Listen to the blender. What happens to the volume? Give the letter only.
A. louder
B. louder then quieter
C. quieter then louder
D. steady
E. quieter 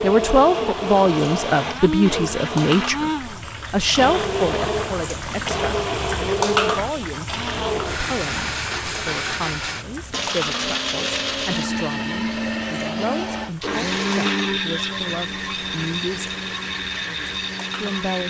D.